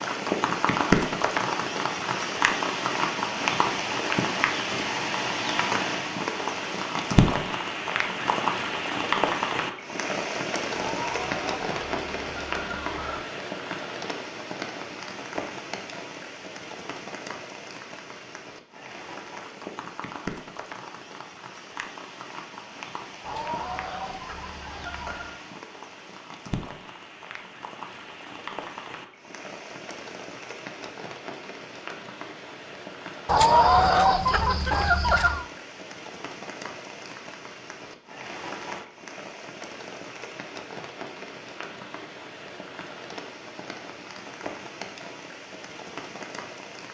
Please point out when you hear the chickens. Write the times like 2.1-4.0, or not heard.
10.8-13.2, 23.2-25.3, 33.2-35.5.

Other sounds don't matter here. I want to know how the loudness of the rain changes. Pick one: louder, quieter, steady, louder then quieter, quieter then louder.
quieter.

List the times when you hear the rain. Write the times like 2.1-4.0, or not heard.
0.0-46.9.